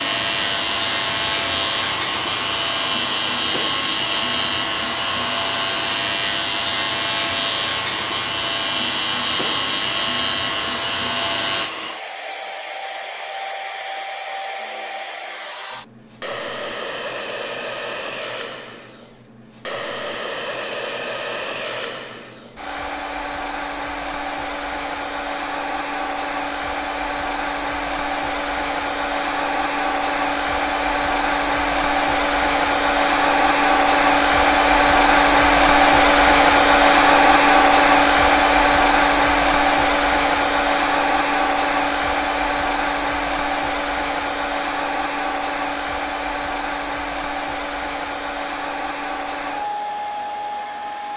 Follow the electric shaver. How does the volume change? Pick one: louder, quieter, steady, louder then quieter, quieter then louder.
steady.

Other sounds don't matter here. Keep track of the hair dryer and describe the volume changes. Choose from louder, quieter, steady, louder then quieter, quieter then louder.
louder then quieter.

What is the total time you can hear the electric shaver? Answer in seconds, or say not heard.
12 s.